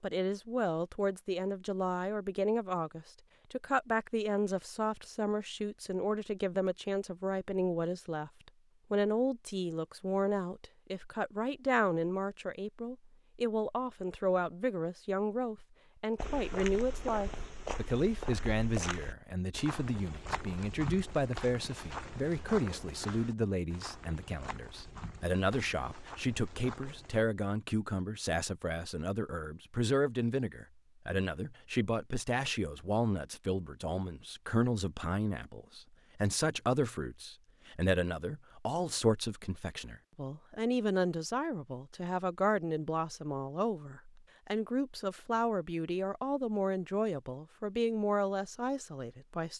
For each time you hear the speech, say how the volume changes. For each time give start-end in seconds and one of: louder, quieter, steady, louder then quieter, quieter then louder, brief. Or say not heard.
0.0-49.5 steady.